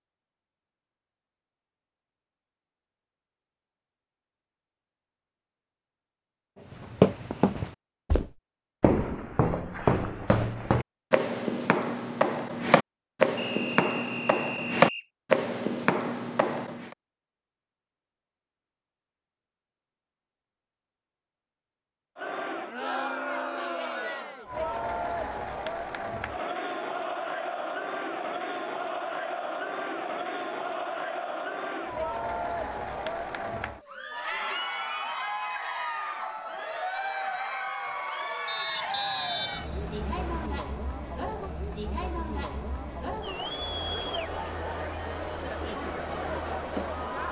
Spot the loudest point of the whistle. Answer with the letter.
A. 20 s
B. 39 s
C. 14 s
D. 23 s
B.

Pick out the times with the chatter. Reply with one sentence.
You can hear the chatter from 22.1 to 47.2 s.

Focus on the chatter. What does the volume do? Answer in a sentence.
The loudness of the chatter stays about the same.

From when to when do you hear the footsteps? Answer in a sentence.
The footsteps can be heard from 6.7 to 16.9 s.